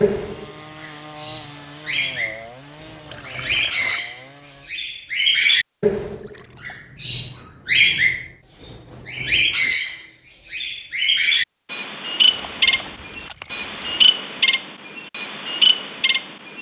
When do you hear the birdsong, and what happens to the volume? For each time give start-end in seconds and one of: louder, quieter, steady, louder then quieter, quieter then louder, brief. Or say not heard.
0.0-16.5 louder.